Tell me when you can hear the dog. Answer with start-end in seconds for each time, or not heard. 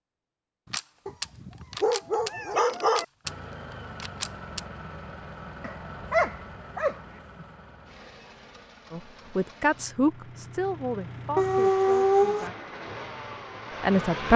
1.1-3.0, 5.6-7.5, 11.3-12.5.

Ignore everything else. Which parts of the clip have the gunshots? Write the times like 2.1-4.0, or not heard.
0.7-4.6.